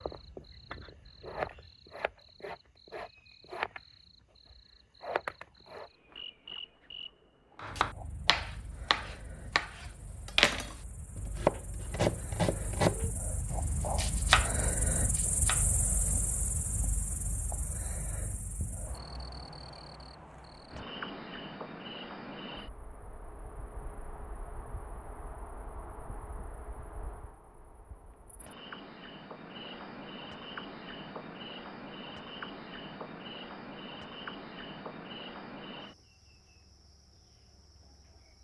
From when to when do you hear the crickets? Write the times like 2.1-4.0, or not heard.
0.0-38.4.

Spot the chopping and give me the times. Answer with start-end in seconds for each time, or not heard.
7.5-16.2.